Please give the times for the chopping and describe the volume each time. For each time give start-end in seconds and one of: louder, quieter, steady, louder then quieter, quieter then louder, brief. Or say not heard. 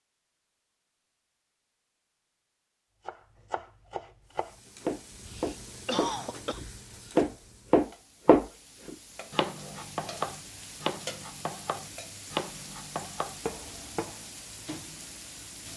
3.0-14.2 louder then quieter.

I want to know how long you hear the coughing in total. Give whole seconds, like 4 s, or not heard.
2 s.